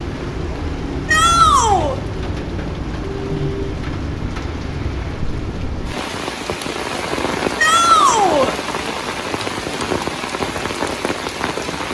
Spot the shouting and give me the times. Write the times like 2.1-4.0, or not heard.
1.1-2.0, 7.5-8.6.